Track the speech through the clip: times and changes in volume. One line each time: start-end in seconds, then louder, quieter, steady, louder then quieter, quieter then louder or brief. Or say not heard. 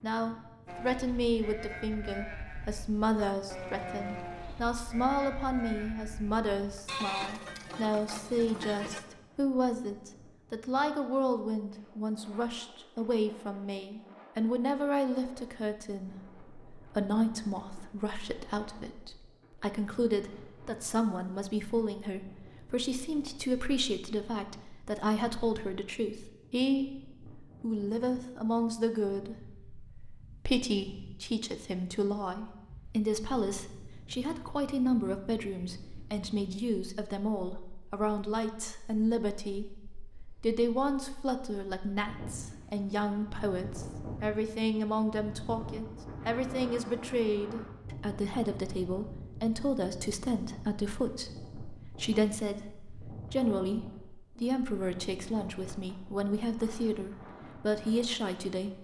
0.0-58.7 steady.